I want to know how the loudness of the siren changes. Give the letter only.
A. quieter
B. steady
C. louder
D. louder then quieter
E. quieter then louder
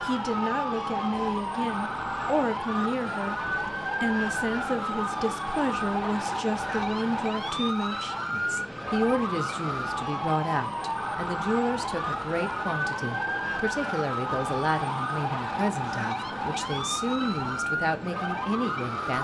B.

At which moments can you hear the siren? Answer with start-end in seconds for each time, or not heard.
0.0-19.1.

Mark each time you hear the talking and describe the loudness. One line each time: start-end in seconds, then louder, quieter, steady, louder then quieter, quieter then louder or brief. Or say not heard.
0.0-19.1 steady.